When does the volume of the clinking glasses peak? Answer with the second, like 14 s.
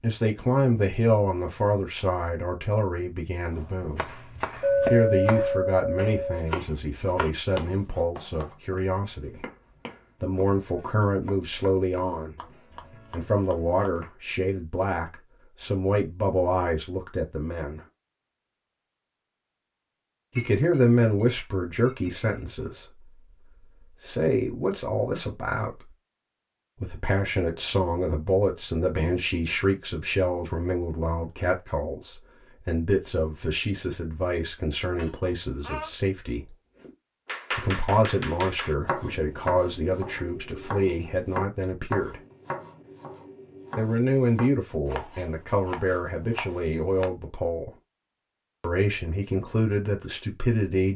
5 s.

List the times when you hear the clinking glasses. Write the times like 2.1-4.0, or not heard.
4.6-6.5, 20.4-22.3, 35.0-35.9.